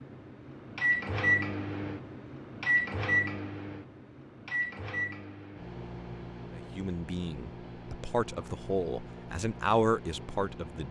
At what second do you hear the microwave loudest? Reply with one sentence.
The volume of the microwave peaks at 1 second.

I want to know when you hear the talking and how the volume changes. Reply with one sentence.
You can hear the talking from 6.5 to 10.8 s, getting louder.